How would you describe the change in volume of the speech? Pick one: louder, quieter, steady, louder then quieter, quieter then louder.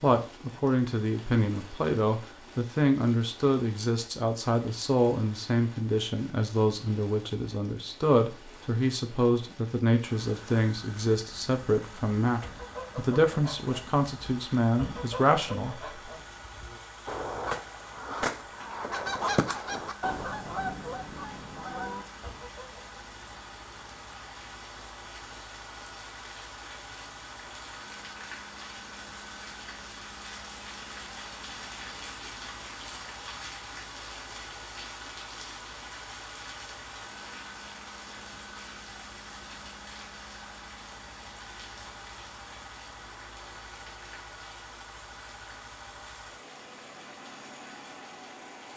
steady.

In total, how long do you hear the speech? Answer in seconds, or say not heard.
16 s.